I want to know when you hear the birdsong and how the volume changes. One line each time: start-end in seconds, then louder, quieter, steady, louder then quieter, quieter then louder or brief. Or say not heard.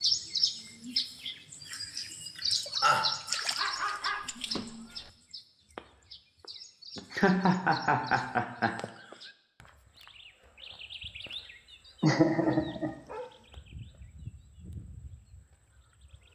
0.0-16.3 quieter.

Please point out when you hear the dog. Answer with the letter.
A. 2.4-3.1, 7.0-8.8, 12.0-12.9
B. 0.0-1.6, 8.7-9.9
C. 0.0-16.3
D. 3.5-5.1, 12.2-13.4
D.